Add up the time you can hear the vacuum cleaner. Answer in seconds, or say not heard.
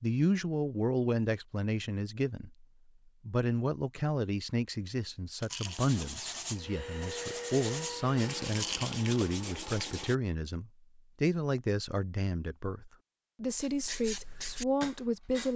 2 s.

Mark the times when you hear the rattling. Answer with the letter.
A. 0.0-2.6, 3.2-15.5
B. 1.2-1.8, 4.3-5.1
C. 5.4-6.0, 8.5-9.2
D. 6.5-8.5
C.